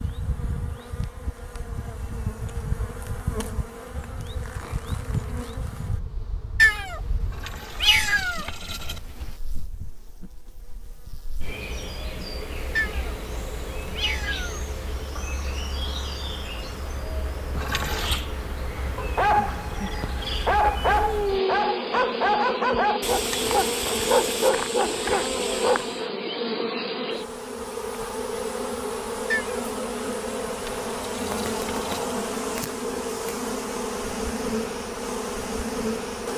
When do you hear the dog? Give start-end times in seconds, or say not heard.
18.9-26.0.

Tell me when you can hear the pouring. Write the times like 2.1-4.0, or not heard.
7.2-9.0, 17.5-18.2, 30.4-32.1.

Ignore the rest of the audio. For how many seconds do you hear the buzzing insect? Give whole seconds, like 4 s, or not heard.
36 s.